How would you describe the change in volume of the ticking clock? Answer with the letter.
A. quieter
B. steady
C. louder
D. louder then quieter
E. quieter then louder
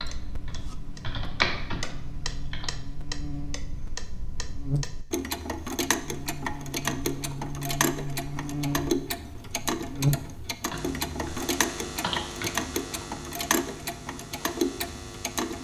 C.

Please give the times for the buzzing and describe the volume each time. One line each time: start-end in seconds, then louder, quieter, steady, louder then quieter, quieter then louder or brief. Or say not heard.
0.1-15.5 louder then quieter.